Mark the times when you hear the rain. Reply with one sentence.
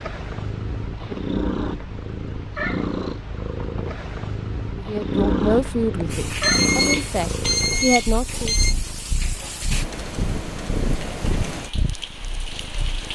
You can hear the rain from 6.0 to 13.1 s.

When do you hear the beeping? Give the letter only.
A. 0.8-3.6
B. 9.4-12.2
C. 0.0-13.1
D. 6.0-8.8
D.